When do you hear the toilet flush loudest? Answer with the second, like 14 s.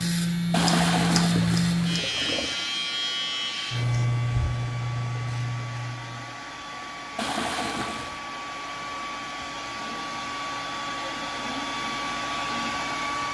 1 s.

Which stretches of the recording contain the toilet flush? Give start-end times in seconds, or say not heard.
0.5-2.6, 7.2-8.2.